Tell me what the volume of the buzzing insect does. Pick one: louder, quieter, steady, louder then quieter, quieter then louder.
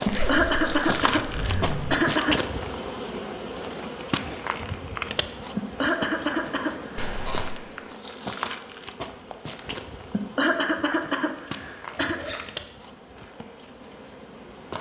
quieter.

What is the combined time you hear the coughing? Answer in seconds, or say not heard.
6 s.